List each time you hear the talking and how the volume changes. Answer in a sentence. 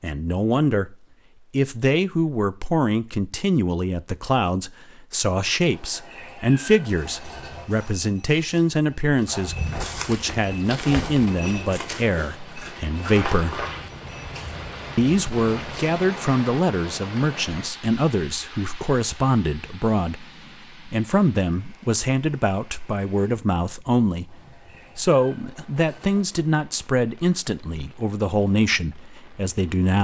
You can hear the talking from 0.0 to 13.7 s, at a steady volume; and from 14.9 to 29.9 s, at a steady volume.